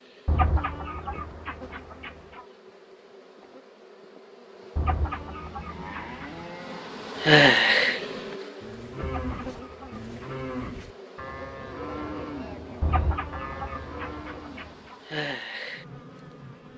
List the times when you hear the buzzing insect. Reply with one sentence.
You can hear the buzzing insect from 0.0 to 16.7 s.